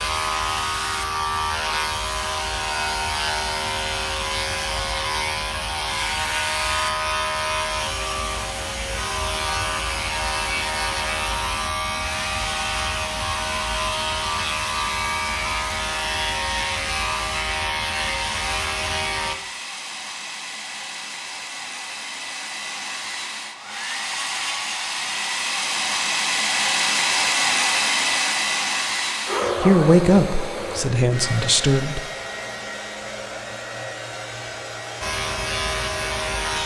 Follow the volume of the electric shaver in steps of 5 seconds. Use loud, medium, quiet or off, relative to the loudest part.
loud, loud, loud, loud, off, off, off, loud.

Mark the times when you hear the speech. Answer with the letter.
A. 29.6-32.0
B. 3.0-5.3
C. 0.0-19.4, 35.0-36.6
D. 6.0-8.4
A.